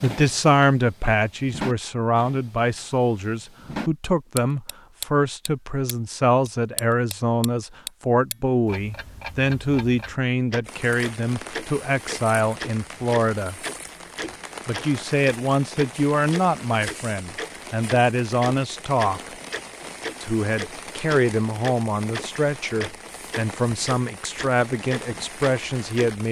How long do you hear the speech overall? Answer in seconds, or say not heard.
24 s.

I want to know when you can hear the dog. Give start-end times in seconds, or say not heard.
not heard.